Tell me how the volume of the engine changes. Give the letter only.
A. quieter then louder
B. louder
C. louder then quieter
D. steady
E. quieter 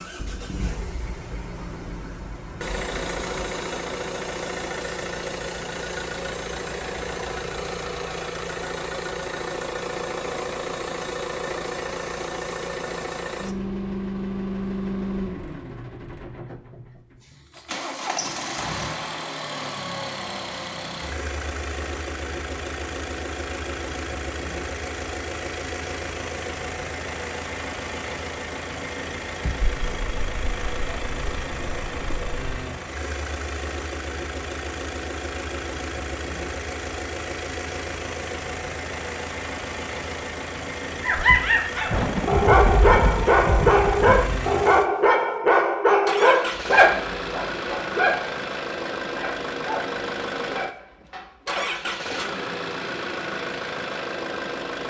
D.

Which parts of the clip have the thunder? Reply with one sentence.
The thunder can be heard from 0.1 to 3.5 s, from 29.6 to 32.6 s and from 41.9 to 44.4 s.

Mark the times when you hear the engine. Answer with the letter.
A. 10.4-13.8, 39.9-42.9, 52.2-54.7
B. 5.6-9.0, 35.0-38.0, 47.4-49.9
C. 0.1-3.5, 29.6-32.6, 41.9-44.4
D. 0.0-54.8
D.